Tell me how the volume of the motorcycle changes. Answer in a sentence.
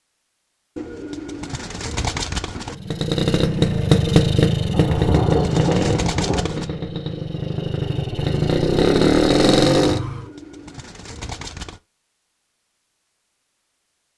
The volume of the motorcycle goes down, then up.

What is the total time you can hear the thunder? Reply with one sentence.
The thunder can be heard for 2 seconds in total.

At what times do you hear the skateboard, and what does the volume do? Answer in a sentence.
You can't hear the skateboard here.